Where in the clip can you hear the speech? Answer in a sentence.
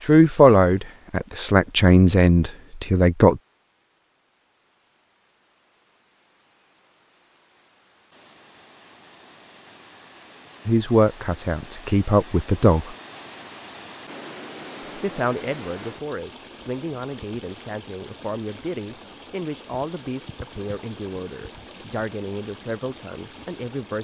The speech can be heard from 0.1 to 3.4 s, from 10.7 to 12.9 s and from 14.9 to 23.9 s.